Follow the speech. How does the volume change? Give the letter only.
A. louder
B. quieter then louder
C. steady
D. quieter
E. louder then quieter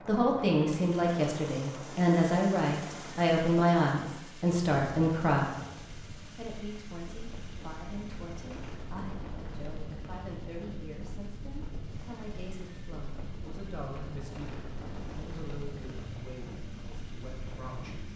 D.